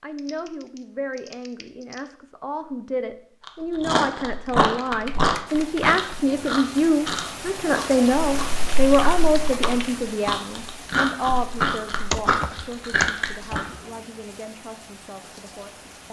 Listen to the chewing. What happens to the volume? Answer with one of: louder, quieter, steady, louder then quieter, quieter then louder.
quieter then louder.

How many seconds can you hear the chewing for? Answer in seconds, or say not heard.
10 s.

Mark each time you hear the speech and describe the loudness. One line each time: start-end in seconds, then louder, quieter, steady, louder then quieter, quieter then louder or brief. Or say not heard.
0.0-16.0 louder then quieter.